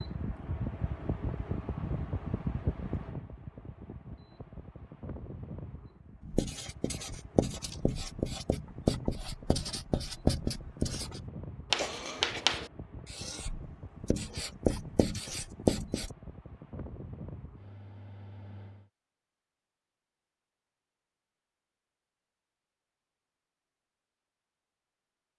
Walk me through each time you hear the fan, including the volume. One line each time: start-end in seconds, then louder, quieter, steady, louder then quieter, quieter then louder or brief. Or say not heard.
0.0-18.9 quieter.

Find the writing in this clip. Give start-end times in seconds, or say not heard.
6.2-16.1.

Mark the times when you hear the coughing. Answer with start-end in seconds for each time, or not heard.
11.8-12.4.